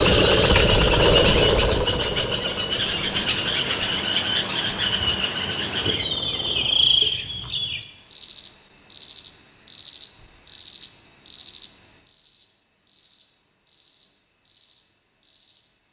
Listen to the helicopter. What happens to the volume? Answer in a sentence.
The volume of the helicopter goes down.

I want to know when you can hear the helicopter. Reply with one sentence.
You can hear the helicopter from 0.0 to 7.2 s.